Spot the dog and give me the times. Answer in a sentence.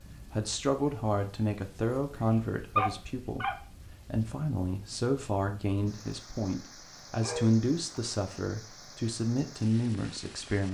The dog can be heard from 2.8 to 3.5 s and from 7.2 to 8.4 s.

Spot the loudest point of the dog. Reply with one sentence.
The loudest moment of the dog is at 3 seconds.